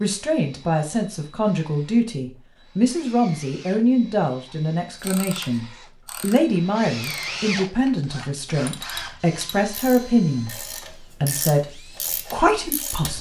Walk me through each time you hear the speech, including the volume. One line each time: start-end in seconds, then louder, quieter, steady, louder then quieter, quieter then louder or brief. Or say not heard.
0.0-13.1 steady.